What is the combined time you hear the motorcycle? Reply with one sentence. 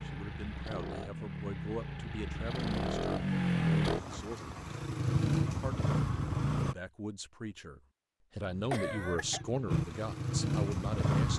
The motorcycle can be heard for 10 seconds in total.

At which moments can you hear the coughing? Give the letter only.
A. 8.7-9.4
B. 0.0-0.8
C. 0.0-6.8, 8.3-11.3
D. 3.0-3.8
A.